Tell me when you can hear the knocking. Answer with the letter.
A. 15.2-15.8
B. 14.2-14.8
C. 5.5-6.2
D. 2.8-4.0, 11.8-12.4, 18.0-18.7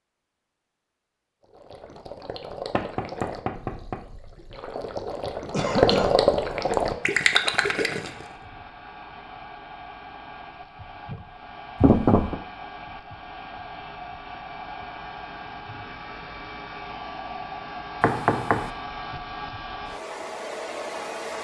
D.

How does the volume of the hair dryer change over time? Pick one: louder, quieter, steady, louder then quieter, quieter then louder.
louder.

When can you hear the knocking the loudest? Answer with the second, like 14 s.
12 s.